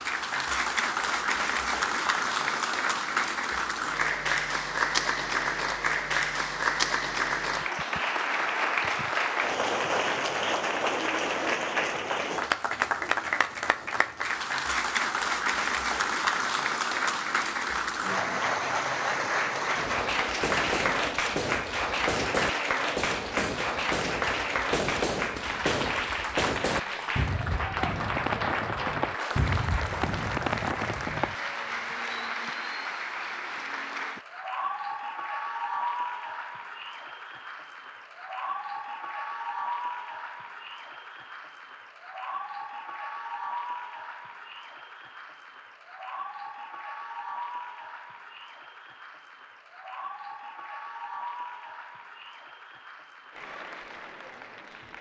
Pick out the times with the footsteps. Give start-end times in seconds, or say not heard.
not heard.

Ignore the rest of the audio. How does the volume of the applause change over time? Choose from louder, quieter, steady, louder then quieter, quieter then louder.
quieter.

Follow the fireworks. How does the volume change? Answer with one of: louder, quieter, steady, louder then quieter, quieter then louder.
steady.